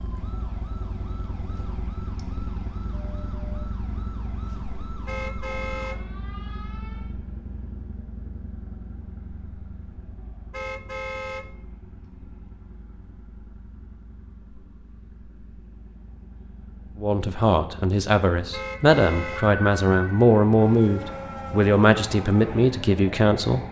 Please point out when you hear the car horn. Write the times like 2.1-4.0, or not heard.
5.0-6.0, 10.5-11.4, 18.5-19.4.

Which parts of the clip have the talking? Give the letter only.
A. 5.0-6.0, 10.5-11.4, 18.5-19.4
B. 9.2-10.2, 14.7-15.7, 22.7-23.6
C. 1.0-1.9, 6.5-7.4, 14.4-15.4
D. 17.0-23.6
D.